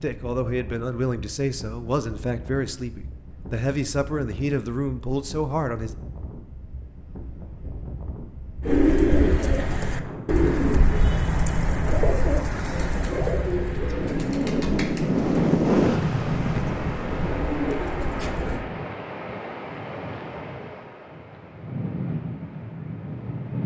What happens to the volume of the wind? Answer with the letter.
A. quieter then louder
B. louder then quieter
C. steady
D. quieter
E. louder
B.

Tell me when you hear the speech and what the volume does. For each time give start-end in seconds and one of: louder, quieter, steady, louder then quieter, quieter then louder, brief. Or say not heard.
0.0-6.0 steady.